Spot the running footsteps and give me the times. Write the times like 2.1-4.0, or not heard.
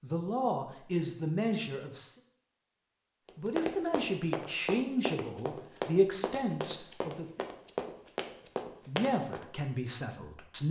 3.2-9.4.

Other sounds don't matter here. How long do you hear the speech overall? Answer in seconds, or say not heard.
8 s.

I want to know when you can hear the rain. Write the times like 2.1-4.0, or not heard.
not heard.